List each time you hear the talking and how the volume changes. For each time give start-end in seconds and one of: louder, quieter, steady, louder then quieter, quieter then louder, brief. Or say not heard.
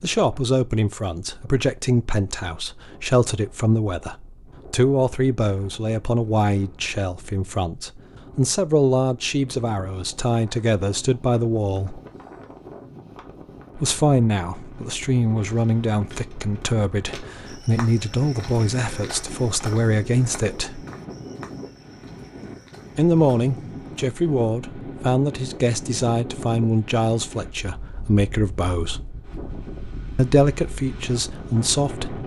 0.0-12.0 steady
13.8-20.9 steady
22.9-29.1 steady
30.1-32.2 brief.